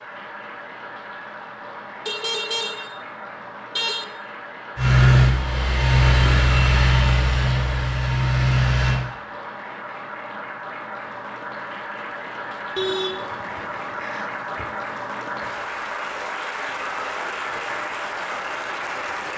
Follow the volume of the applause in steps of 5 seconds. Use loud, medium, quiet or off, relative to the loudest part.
medium, medium, loud, loud.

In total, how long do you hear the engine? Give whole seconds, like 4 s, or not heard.
4 s.